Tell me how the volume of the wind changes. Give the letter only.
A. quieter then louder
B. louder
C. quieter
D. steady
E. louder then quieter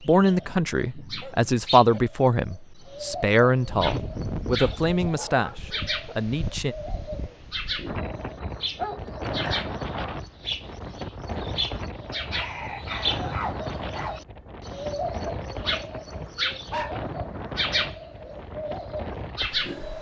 D.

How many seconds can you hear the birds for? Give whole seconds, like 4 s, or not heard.
20 s.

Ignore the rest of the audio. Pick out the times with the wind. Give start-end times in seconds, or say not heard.
3.6-19.9.